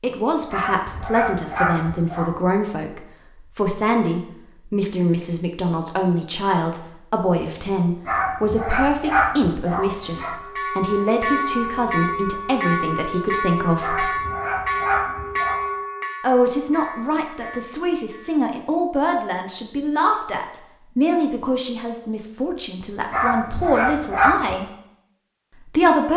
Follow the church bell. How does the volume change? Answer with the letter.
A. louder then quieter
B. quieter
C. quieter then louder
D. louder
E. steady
B.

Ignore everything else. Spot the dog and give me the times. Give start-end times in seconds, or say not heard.
0.5-2.4, 8.1-10.4, 13.8-15.7, 23.1-24.6.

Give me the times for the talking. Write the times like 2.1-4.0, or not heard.
0.0-14.1, 16.2-24.6, 25.6-26.1.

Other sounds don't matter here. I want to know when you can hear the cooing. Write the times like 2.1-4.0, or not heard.
not heard.